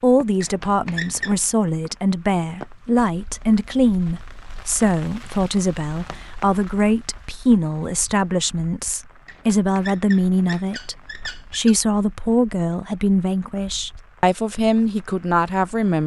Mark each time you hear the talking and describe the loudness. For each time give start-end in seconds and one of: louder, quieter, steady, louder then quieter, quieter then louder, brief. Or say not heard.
0.0-16.0 steady.